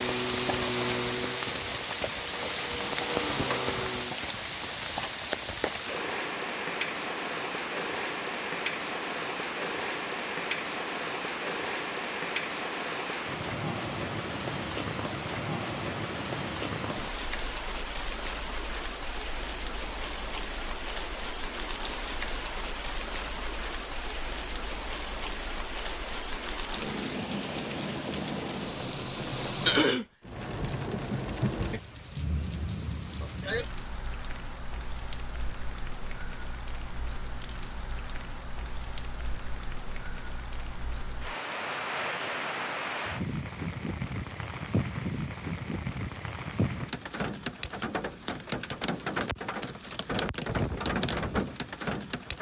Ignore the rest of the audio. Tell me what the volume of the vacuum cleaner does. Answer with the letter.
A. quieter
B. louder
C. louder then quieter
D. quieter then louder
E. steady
D.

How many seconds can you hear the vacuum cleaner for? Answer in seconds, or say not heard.
4 s.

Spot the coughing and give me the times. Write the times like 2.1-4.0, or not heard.
29.6-30.1.